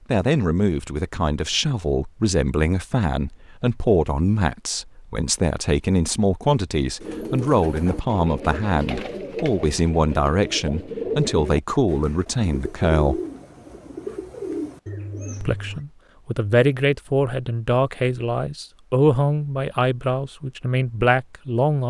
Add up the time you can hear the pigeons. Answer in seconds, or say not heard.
9 s.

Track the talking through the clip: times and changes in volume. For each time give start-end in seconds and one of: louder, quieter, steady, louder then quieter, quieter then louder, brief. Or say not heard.
0.1-13.2 steady
15.4-21.8 steady.